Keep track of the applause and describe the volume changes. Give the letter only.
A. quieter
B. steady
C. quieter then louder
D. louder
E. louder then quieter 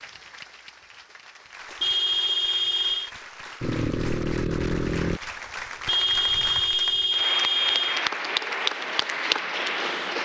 D.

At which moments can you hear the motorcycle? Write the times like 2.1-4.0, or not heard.
3.6-5.2.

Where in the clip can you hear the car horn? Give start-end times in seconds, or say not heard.
1.8-3.1, 5.8-8.1.